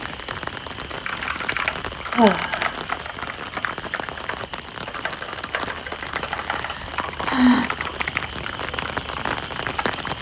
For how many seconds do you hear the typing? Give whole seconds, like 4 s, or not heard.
9 s.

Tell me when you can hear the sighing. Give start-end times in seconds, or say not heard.
2.1-2.8, 6.5-7.7.